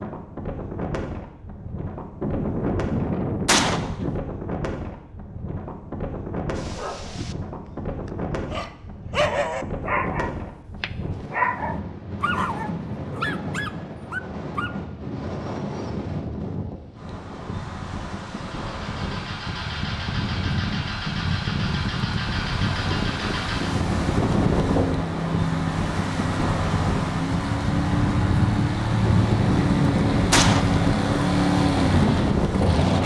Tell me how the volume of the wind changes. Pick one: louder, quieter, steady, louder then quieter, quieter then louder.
louder.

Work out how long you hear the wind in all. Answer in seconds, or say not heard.
33 s.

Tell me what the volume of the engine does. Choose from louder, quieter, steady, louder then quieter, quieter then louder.
louder.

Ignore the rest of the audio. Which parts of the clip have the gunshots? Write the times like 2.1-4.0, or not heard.
2.2-4.2, 29.1-30.8.